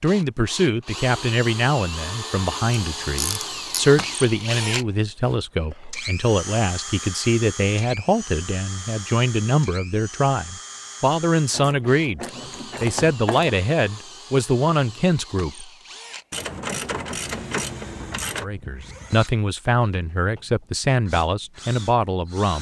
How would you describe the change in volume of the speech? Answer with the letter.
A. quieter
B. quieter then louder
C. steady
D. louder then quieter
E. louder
C.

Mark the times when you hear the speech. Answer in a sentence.
You can hear the speech from 0.0 to 15.7 s and from 18.4 to 22.5 s.